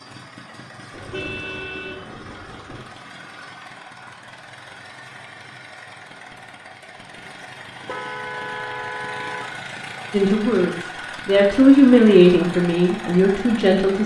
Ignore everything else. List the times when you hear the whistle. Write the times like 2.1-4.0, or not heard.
not heard.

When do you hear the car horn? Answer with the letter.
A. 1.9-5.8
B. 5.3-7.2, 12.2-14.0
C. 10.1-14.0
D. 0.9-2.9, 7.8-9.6
D.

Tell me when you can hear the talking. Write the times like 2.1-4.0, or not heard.
10.1-14.0.